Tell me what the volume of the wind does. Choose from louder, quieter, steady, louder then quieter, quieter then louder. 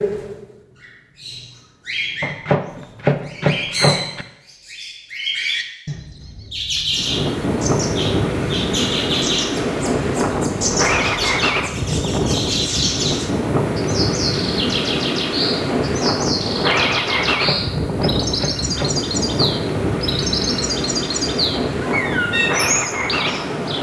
steady.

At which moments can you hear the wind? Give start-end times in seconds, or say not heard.
6.9-23.7.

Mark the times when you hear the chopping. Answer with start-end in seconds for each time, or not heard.
2.2-4.2, 17.2-18.9.